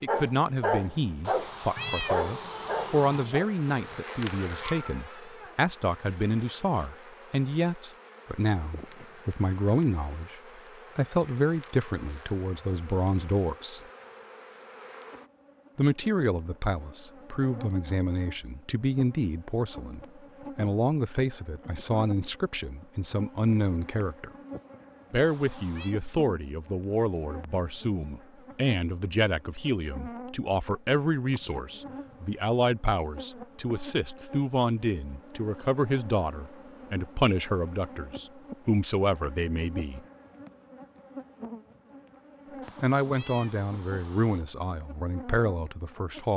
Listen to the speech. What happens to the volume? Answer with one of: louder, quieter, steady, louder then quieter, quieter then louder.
steady.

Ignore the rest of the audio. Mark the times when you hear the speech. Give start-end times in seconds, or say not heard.
0.0-13.8, 15.8-24.3, 25.1-40.0, 42.8-46.3.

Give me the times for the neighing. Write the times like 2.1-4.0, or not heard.
not heard.